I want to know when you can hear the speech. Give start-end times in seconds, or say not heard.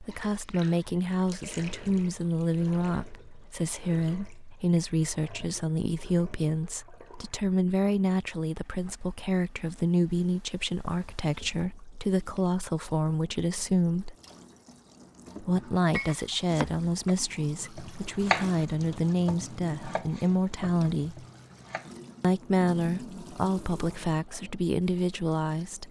0.0-14.2, 15.4-21.2, 22.2-25.8.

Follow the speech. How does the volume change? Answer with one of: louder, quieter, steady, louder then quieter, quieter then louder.
steady.